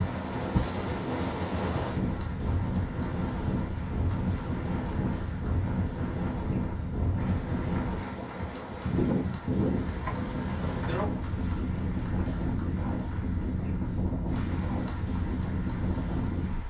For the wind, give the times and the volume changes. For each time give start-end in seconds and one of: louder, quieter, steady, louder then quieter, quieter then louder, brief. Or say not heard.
0.0-16.6 steady.